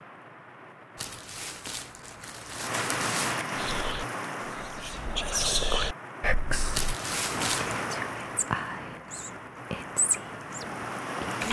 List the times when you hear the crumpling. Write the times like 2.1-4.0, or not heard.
0.9-3.4, 6.7-7.8.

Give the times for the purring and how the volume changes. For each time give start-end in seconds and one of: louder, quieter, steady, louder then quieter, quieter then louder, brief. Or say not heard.
not heard.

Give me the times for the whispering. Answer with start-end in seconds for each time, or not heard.
3.5-11.4.